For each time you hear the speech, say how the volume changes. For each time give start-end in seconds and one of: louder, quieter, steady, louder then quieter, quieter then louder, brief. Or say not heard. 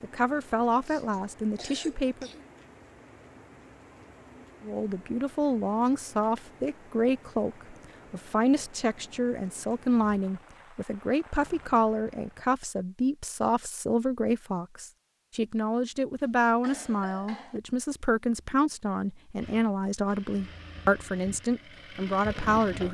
0.0-2.3 brief
4.6-22.8 steady.